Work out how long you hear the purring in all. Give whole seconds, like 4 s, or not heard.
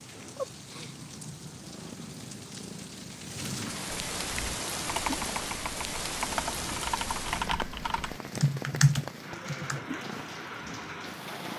11 s.